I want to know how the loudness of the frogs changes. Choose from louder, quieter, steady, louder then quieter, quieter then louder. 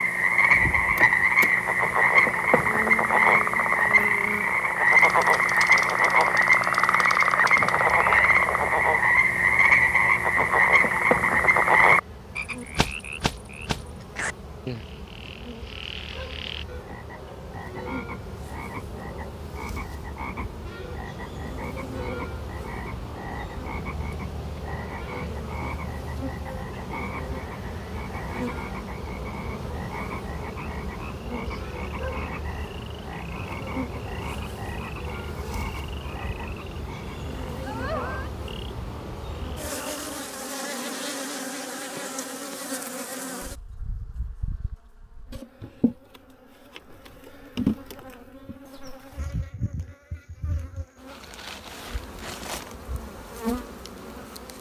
quieter.